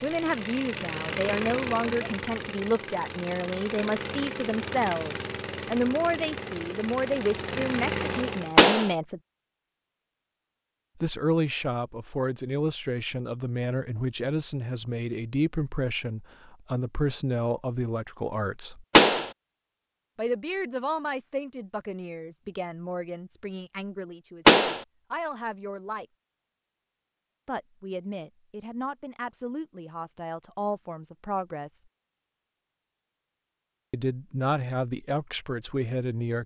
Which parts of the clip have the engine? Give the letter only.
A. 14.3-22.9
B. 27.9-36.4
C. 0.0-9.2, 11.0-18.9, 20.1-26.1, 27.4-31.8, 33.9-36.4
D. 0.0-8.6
D.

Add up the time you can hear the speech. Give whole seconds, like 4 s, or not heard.
30 s.